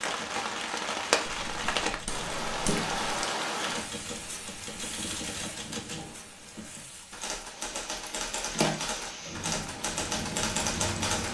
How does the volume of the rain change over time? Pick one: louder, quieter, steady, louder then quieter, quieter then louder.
quieter then louder.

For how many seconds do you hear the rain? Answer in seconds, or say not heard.
11 s.